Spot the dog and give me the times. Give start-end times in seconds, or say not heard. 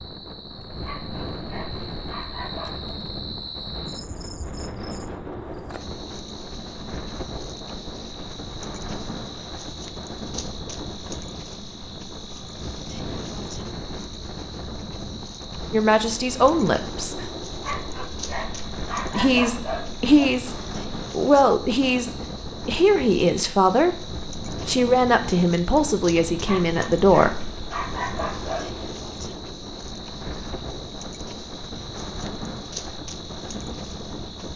0.7-3.0, 17.5-20.1, 26.3-28.9.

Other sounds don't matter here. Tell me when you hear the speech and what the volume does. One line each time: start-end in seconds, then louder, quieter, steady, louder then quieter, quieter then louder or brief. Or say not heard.
15.7-17.3 brief
19.1-27.5 steady.